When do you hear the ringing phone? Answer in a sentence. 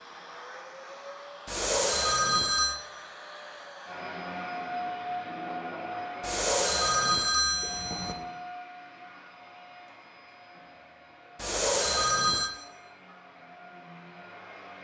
You can hear the ringing phone from 1.4 to 2.8 s, from 6.2 to 8.2 s and from 11.3 to 12.5 s.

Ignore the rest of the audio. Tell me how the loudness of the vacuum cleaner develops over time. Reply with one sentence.
The loudness of the vacuum cleaner goes up, then down.